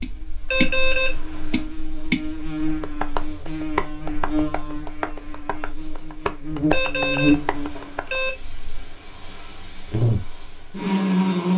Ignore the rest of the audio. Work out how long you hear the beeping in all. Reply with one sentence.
The beeping can be heard for 3 seconds in total.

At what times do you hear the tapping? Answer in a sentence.
The tapping can be heard from 0.0 to 8.2 s.